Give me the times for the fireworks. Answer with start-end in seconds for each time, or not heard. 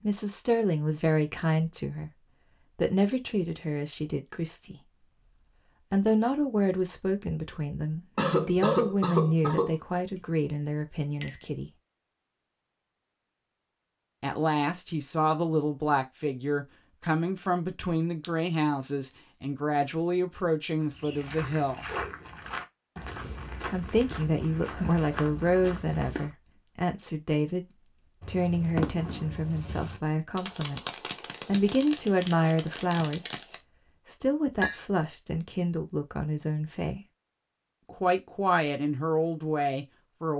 28.2-33.6.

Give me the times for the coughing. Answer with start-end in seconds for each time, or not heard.
8.2-9.8.